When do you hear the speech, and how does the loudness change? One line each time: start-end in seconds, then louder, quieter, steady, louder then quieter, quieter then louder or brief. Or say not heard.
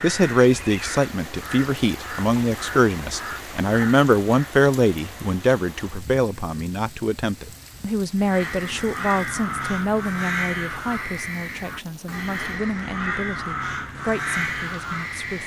0.0-15.4 quieter.